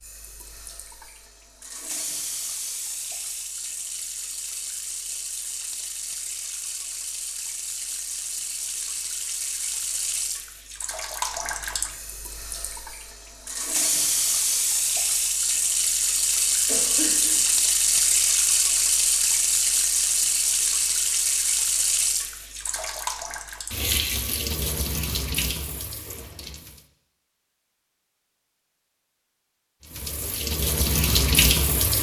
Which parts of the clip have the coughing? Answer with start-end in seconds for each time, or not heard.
16.6-17.4.